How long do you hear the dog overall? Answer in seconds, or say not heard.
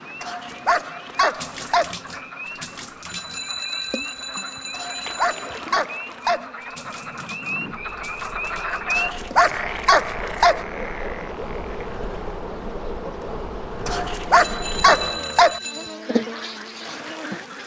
7 s.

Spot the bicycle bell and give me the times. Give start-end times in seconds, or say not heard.
3.0-5.6, 14.3-15.9.